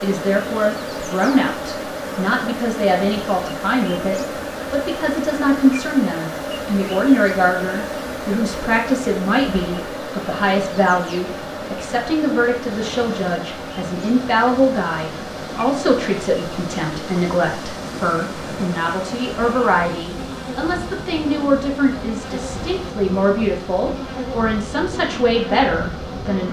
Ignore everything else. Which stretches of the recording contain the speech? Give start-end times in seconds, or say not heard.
0.0-26.4.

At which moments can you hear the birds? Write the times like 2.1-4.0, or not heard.
not heard.